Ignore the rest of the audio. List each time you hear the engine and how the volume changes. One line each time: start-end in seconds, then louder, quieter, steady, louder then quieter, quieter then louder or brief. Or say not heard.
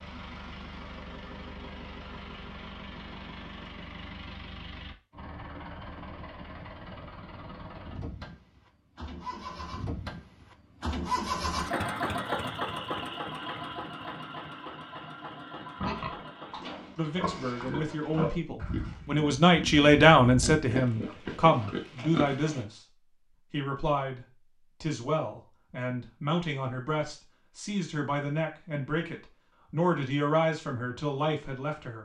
0.0-16.8 louder then quieter.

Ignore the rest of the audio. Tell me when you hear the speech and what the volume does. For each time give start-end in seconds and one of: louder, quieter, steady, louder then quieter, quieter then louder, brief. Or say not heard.
16.9-22.8 louder then quieter
23.5-32.0 steady.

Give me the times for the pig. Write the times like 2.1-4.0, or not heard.
15.8-22.6.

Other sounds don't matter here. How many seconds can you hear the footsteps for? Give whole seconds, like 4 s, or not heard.
not heard.